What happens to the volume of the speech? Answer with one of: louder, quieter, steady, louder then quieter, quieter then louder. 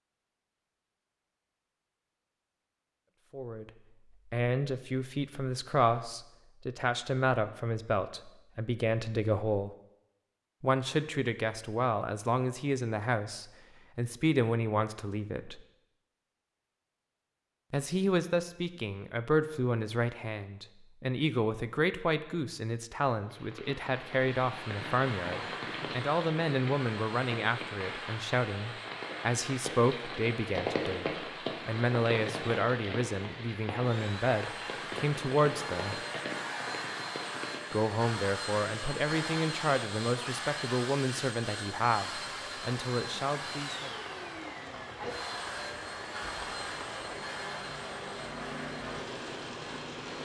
steady.